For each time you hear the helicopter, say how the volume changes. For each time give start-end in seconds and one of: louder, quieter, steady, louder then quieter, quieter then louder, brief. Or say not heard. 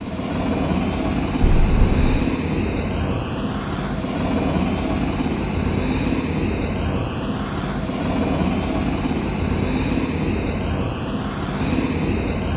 0.0-12.5 steady.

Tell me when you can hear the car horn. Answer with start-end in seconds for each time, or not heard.
1.4-2.2.